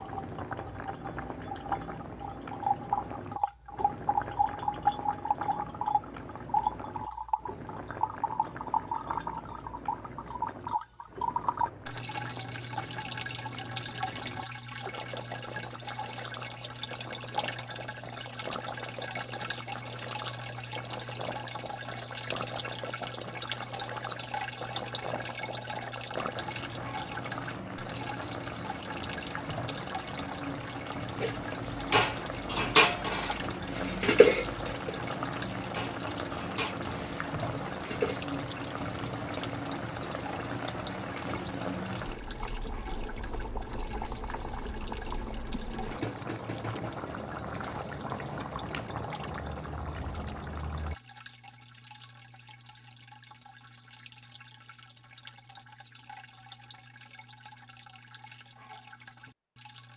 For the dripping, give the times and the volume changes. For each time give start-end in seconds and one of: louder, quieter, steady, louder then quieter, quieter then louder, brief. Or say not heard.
0.0-59.9 quieter.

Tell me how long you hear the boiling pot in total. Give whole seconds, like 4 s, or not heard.
51 s.